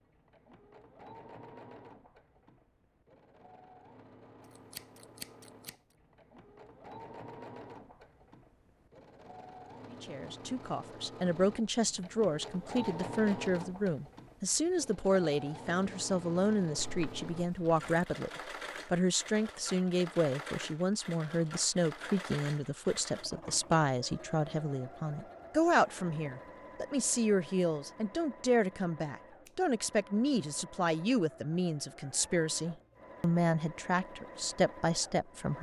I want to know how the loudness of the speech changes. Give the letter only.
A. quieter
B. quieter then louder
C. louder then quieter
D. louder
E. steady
E.